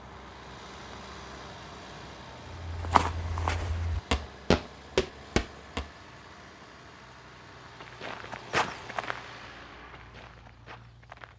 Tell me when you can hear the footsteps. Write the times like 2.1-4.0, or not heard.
2.6-5.9, 7.6-11.3.